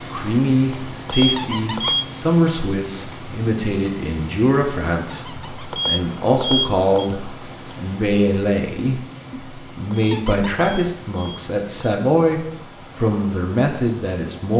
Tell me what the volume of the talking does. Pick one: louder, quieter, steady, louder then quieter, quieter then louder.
steady.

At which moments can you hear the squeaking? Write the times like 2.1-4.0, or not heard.
1.4-2.0, 5.1-5.8, 10.1-10.7.